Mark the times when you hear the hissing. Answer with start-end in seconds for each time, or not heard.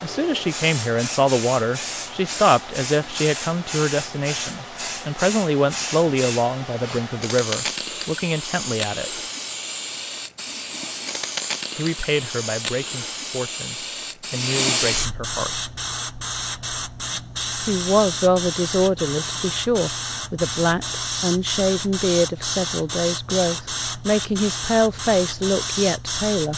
0.0-26.5.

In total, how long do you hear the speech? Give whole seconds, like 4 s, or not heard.
22 s.